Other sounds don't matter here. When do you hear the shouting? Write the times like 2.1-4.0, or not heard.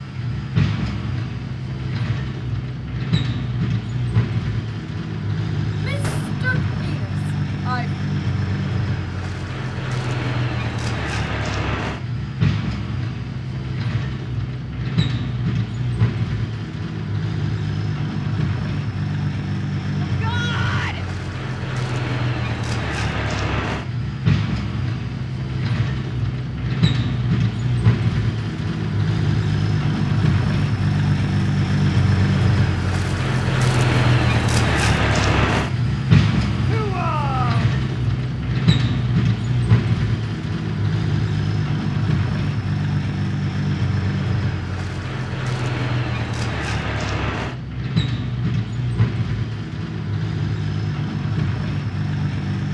5.7-7.9, 20.0-21.1, 36.6-37.7.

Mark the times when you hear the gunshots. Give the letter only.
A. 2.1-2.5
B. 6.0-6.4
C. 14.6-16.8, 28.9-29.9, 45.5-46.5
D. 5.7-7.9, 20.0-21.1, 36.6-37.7
B.